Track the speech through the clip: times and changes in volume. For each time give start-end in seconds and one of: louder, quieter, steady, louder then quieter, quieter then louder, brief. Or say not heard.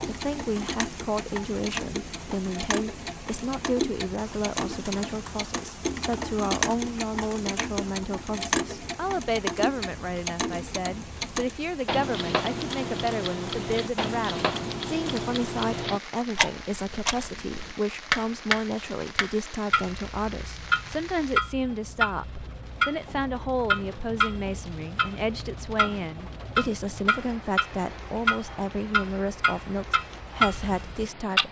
0.1-31.4 steady.